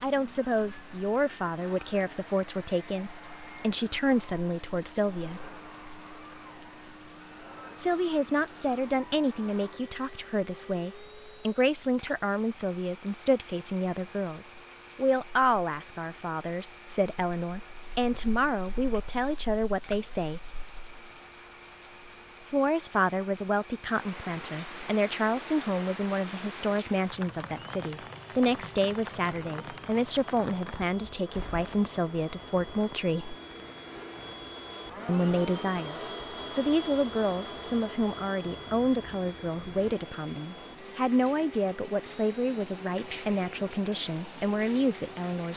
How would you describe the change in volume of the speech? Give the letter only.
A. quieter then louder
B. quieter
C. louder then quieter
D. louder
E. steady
E.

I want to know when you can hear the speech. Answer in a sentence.
The speech can be heard from 0.0 to 5.5 s, from 7.8 to 20.4 s, from 22.4 to 33.4 s and from 35.0 to 45.5 s.